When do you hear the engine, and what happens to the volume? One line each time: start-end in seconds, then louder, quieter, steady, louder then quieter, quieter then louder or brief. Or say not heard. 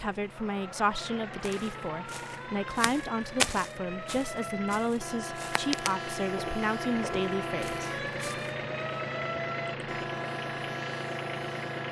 0.0-11.8 louder.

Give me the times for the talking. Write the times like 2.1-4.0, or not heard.
0.0-7.9.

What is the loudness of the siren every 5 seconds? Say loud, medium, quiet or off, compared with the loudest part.
medium, loud, loud.